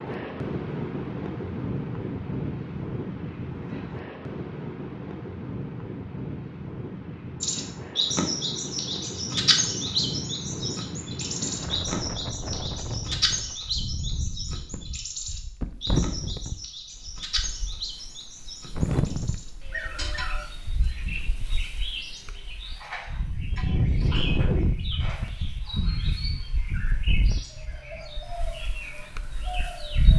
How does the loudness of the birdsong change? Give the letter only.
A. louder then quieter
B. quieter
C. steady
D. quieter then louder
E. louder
B.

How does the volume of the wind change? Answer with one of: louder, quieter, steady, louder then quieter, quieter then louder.
steady.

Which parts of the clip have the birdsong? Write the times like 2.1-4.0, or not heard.
7.4-30.1.